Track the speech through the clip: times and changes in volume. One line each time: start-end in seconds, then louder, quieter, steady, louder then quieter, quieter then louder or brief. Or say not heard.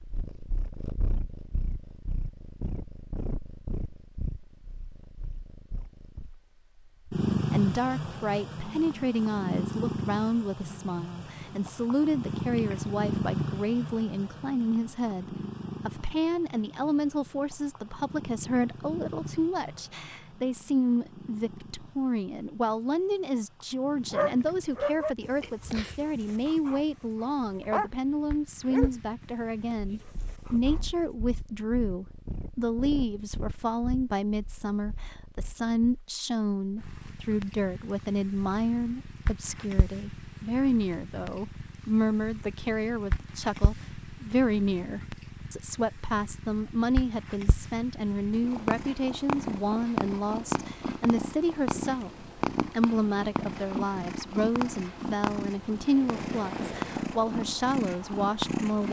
7.5-58.8 steady.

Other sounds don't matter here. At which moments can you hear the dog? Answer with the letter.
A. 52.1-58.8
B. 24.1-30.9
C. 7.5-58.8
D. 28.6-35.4
B.